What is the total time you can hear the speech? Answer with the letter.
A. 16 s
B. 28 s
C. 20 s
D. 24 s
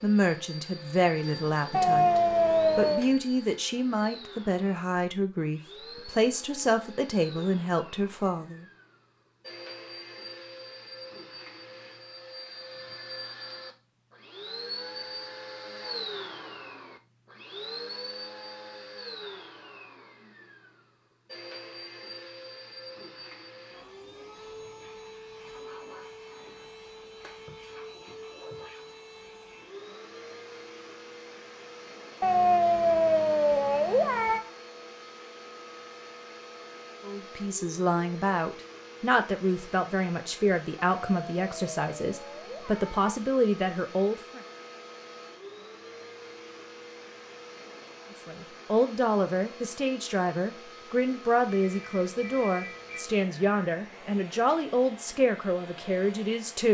D.